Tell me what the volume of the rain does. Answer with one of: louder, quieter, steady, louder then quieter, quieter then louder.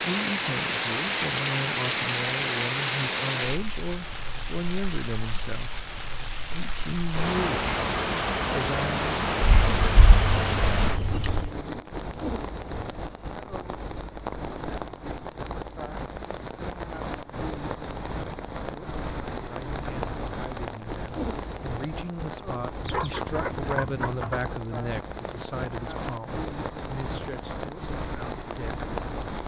steady.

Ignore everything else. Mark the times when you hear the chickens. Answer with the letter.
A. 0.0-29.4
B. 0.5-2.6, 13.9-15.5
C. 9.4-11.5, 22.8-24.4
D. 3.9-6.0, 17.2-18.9
C.